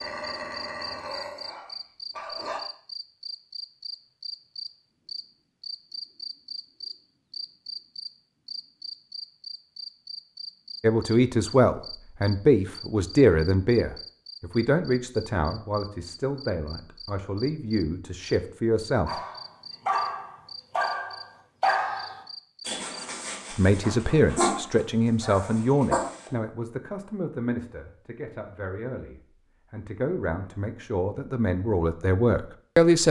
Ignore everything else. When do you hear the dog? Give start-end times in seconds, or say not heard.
0.0-2.6, 19.1-26.3.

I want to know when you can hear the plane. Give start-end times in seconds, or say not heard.
not heard.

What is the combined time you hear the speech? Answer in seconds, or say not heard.
18 s.